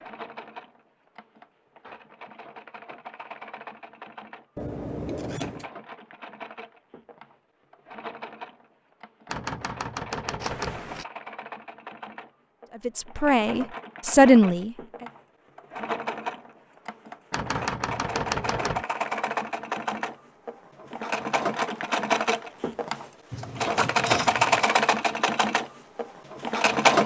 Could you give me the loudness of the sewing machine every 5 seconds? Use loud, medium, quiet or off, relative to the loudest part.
quiet, quiet, quiet, medium, loud, loud.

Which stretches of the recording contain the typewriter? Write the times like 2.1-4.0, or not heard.
9.2-10.8, 17.3-18.9.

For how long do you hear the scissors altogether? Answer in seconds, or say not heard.
3 s.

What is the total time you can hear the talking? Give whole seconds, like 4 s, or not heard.
2 s.